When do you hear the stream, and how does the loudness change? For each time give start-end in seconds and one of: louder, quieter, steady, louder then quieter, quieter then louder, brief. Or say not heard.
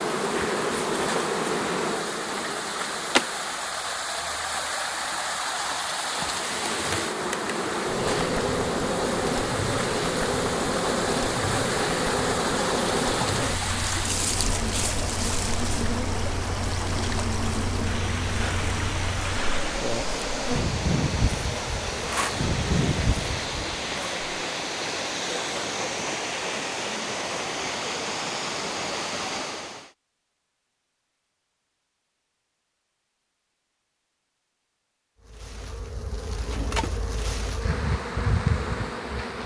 0.0-29.9 steady.